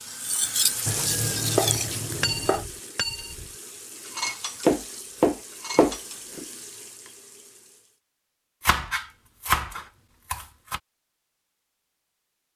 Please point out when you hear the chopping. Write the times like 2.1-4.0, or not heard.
0.8-2.6, 4.7-6.5, 8.7-10.8.